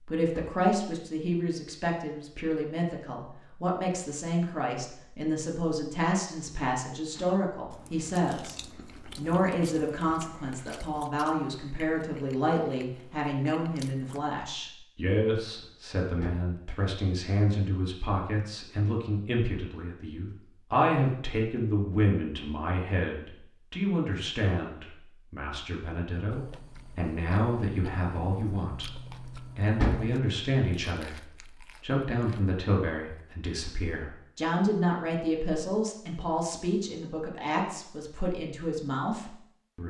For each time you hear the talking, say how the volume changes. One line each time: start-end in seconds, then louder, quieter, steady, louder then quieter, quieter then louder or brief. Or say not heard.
0.1-39.8 steady.